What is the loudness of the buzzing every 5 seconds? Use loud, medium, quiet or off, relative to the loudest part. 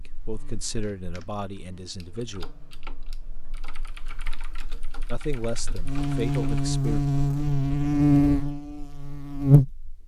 quiet, loud.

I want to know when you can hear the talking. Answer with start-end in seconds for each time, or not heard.
0.0-2.5, 5.1-7.0.